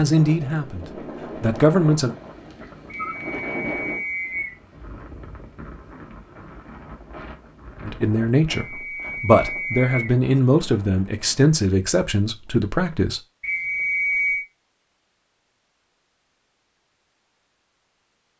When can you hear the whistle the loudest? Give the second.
14 s.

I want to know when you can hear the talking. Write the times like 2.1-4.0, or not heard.
0.0-2.1, 7.8-13.2.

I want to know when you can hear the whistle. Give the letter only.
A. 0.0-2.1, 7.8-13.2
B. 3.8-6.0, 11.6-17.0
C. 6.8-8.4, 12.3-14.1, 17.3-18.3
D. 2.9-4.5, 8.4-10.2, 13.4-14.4
D.